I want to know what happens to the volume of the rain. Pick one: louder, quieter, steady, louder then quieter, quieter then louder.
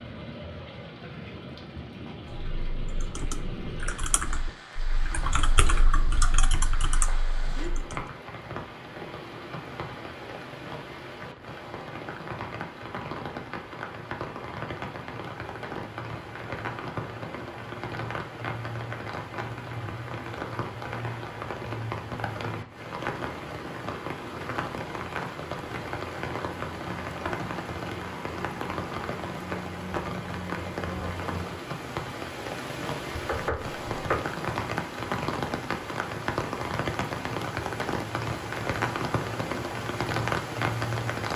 louder.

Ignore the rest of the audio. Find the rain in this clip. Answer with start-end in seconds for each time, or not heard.
0.0-41.3.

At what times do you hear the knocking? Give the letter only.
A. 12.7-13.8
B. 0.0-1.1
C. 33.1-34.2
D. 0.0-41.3
C.